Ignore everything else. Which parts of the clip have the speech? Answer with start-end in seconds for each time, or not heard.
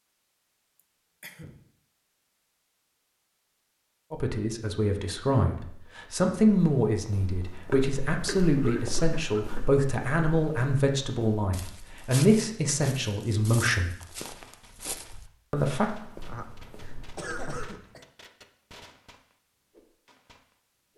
4.1-13.9, 15.5-15.9.